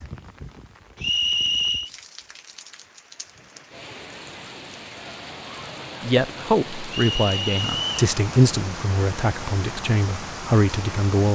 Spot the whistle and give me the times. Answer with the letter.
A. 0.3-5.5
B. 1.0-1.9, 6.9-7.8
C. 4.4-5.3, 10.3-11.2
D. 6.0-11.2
B.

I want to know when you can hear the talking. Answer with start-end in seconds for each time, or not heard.
6.0-11.2.